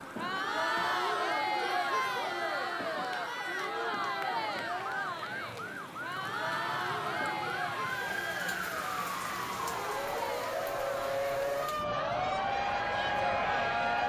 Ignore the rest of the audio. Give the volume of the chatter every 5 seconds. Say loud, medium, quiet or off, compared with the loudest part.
loud, medium, loud.